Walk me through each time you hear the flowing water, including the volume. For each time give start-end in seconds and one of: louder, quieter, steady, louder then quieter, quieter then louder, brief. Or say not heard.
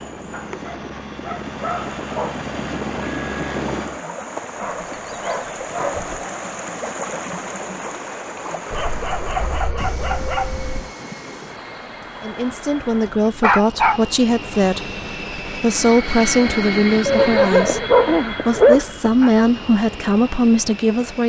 0.0-13.2 louder then quieter.